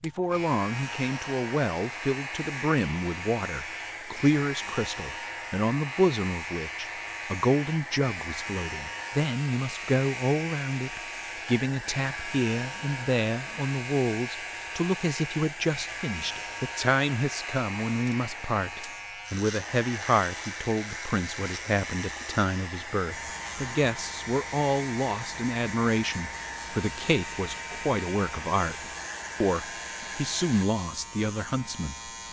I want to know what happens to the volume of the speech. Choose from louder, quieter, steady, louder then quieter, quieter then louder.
steady.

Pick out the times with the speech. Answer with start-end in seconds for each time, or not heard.
0.0-32.1.